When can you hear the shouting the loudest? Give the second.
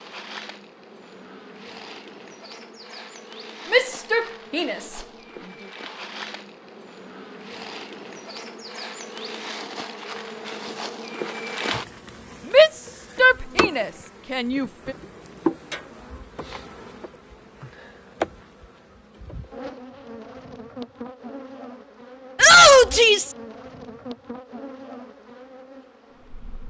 23 s.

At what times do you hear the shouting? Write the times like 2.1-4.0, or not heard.
3.7-5.0, 12.5-14.9, 22.4-23.4.